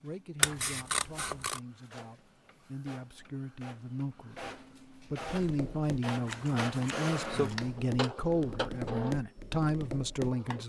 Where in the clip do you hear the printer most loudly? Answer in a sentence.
The loudest moment of the printer is at 7 seconds.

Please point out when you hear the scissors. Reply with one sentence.
You can hear the scissors from 0.4 to 1.6 s and from 6.2 to 7.8 s.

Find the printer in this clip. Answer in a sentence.
The printer can be heard from 0.0 to 10.6 s.